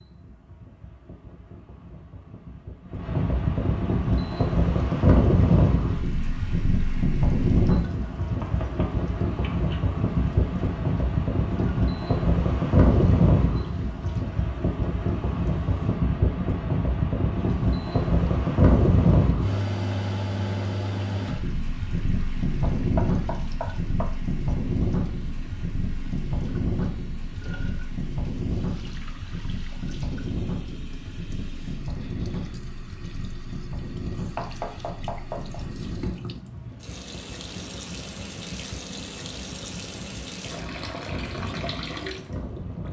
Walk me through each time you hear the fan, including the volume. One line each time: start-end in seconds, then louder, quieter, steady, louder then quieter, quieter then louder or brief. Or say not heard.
0.0-42.8 quieter.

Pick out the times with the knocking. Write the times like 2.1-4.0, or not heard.
8.2-9.9, 22.6-24.1, 34.4-35.6.